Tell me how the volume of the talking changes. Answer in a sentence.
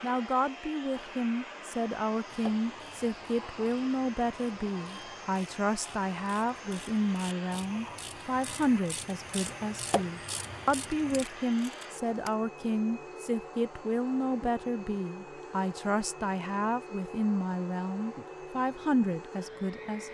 The volume of the talking stays about the same.